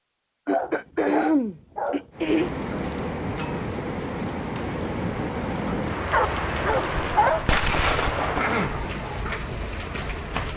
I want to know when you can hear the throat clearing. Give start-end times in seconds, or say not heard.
0.5-2.5, 8.3-8.9.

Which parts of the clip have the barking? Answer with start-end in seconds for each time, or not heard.
0.5-2.1, 6.1-8.4.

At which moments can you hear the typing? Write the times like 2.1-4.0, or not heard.
not heard.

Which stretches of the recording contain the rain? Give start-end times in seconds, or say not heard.
2.1-10.5.